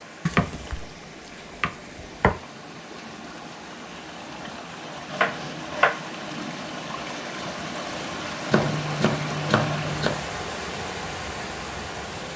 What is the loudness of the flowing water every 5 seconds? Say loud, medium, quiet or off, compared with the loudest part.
medium, loud, loud.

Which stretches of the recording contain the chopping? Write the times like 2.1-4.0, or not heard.
0.2-2.4, 5.1-6.5, 8.5-10.2.